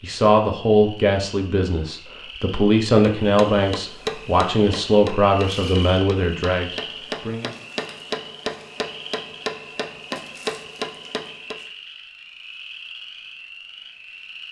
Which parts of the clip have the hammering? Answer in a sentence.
You can hear the hammering from 3.0 to 11.6 s.